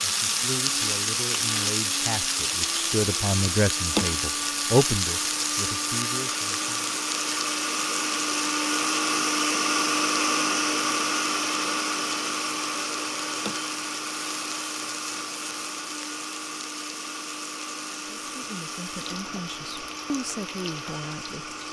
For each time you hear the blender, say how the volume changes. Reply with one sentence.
You can hear the blender from 0.0 to 21.6 s, getting louder then quieter.